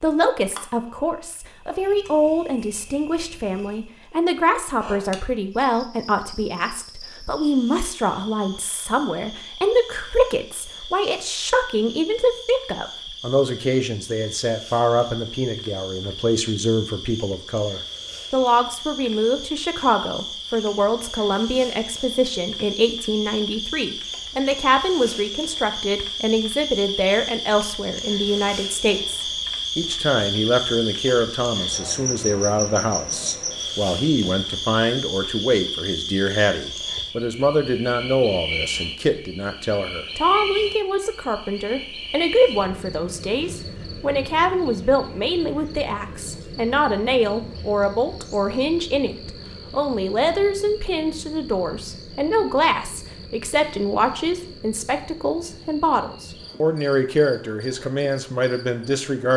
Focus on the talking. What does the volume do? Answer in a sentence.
The volume of the talking stays about the same.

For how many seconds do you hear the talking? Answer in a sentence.
You can hear the talking for 59 seconds altogether.